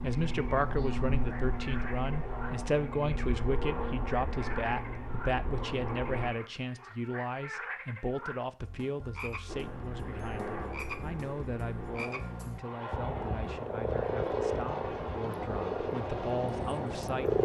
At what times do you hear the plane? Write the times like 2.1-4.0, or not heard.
0.0-6.3, 9.4-17.4.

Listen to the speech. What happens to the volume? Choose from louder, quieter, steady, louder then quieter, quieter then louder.
quieter.